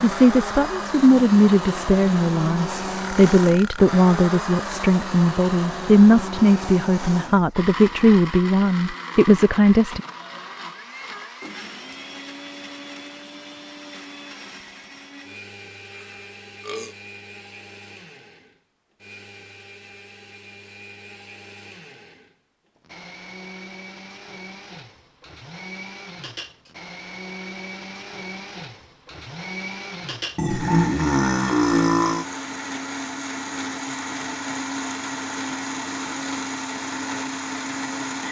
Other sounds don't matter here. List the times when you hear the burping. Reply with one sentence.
You can hear the burping from 2.9 to 3.9 s, from 15.9 to 16.9 s and from 30.4 to 32.2 s.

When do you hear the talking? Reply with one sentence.
You can hear the talking from 0.0 to 10.0 s.